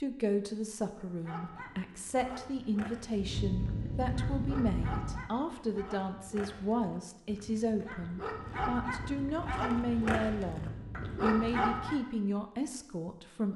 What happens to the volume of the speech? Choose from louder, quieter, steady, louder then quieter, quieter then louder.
steady.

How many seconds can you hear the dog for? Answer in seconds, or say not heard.
11 s.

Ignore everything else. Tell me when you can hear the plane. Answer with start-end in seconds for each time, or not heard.
3.1-5.3, 8.3-12.0.